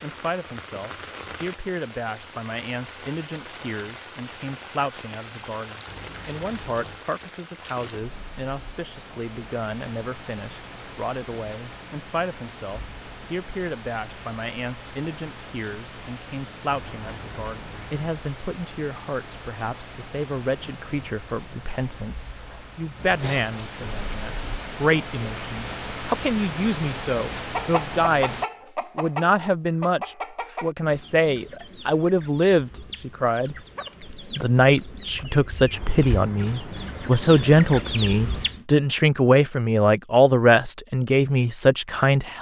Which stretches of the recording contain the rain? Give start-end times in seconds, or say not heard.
0.0-28.4.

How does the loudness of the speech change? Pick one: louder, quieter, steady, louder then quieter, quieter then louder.
louder.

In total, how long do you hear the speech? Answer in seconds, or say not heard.
42 s.